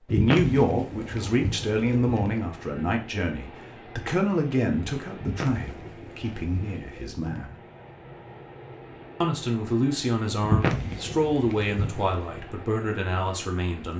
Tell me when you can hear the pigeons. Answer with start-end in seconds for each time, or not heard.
0.1-2.4, 5.2-7.5, 10.4-12.2.